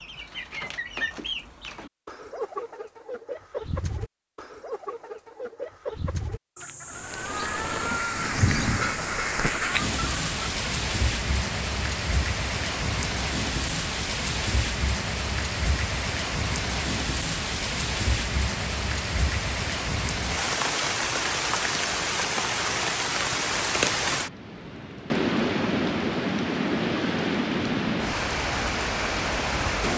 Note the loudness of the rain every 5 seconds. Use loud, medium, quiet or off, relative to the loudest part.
off, loud, loud, loud, loud, loud.